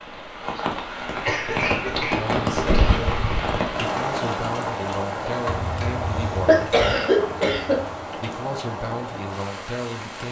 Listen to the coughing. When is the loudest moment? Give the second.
7 s.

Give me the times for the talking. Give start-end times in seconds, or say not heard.
2.0-6.8, 8.2-10.2.